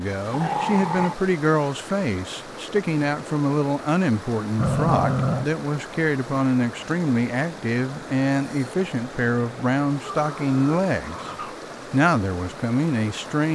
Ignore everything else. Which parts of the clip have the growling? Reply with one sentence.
The growling can be heard from 0.3 to 1.1 s, from 4.5 to 5.5 s and from 10.1 to 11.6 s.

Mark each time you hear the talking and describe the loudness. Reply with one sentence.
The talking can be heard from 0.0 to 11.3 s, at a steady volume; and briefly from 11.9 to 13.5 s.